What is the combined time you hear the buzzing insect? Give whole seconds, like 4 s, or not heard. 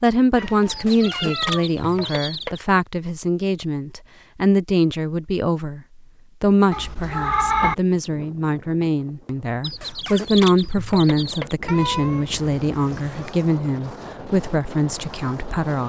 not heard.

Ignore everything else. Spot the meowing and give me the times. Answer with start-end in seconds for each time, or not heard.
0.3-2.4, 6.7-7.8, 11.7-13.3.